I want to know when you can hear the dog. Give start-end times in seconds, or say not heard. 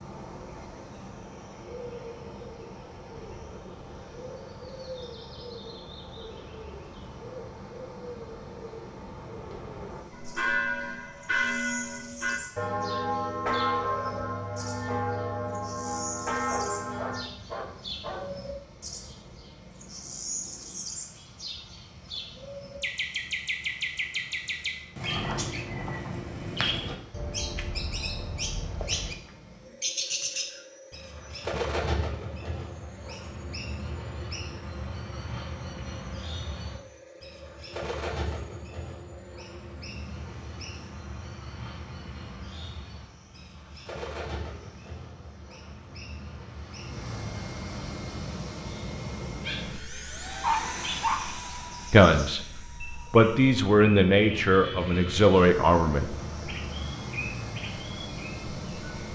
16.4-18.4, 50.4-51.2.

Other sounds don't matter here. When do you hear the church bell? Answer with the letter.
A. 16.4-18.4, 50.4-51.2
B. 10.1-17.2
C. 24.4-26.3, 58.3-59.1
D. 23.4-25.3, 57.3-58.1
B.